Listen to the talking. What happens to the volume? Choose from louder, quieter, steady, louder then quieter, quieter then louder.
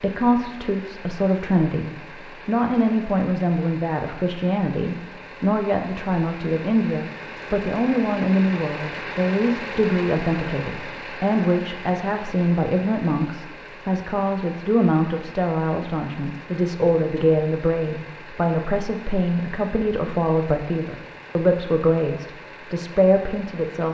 steady.